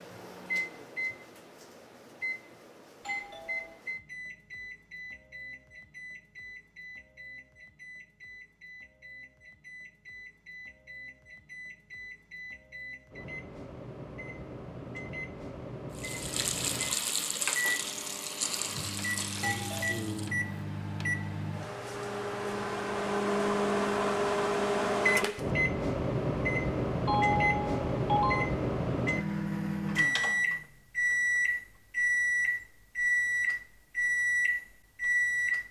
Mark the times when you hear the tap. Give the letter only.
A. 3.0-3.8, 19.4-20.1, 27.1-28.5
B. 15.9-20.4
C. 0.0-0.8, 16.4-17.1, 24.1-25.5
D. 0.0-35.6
B.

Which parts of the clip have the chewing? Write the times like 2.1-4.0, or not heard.
not heard.